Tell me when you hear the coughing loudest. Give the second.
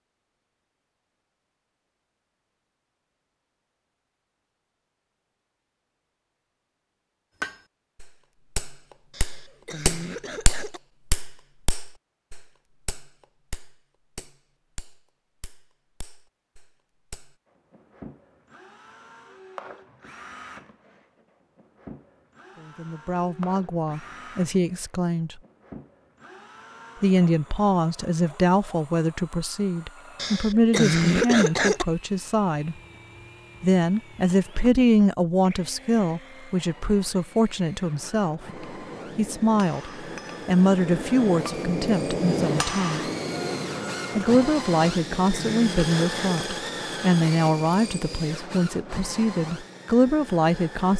31 s.